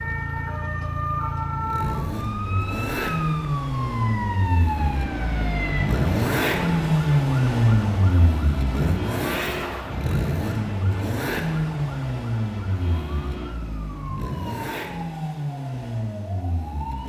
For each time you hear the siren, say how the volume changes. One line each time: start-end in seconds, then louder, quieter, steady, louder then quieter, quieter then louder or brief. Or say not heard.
0.0-17.0 quieter.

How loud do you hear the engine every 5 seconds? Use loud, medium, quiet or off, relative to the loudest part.
medium, loud, medium, medium.